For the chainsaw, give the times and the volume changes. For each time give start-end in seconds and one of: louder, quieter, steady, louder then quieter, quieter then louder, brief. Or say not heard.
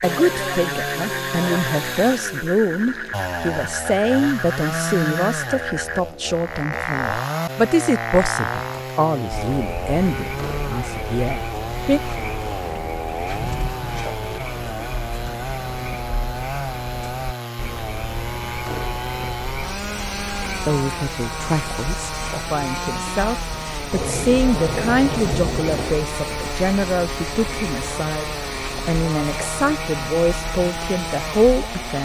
0.0-31.9 steady.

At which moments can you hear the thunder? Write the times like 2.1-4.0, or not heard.
12.7-14.1, 23.9-25.9.